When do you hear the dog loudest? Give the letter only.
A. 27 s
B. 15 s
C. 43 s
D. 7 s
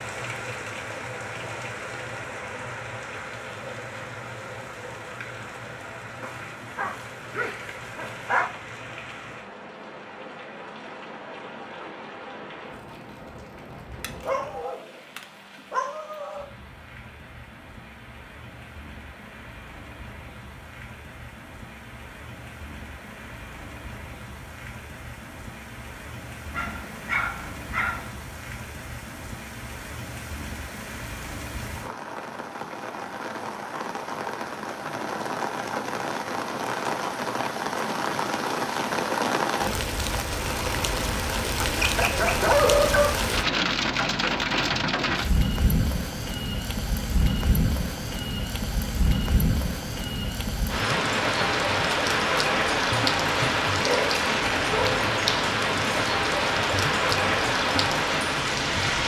C.